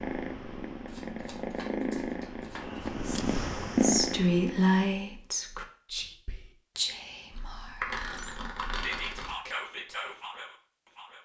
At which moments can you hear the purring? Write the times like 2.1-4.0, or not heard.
0.0-5.0.